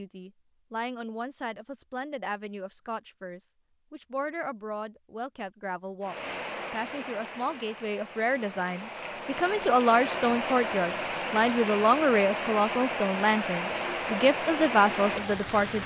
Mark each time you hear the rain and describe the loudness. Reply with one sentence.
The rain can be heard from 6.0 to 15.8 s, getting louder.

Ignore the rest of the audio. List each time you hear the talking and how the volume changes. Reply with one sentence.
The talking can be heard from 0.0 to 15.8 s, getting louder.